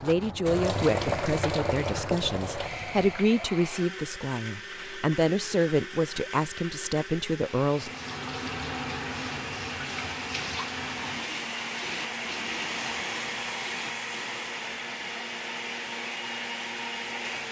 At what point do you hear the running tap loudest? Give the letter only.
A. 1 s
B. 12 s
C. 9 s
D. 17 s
A.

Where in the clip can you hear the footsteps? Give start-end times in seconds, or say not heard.
not heard.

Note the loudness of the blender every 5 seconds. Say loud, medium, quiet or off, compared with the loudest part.
medium, medium, loud, loud.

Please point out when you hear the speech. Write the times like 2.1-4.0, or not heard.
0.0-7.9.